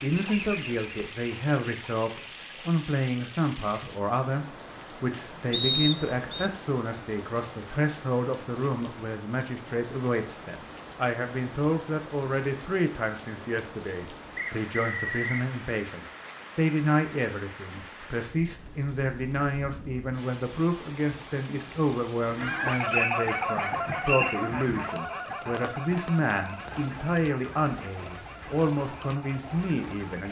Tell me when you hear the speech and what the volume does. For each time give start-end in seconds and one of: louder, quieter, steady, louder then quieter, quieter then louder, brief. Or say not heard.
0.0-30.2 steady.